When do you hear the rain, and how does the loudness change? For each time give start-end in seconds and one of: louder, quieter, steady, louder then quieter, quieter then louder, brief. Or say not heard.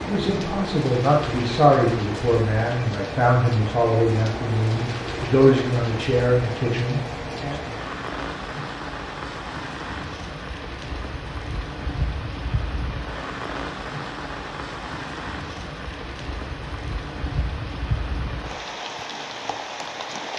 0.0-20.3 steady.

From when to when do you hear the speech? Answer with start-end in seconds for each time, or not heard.
0.0-7.5.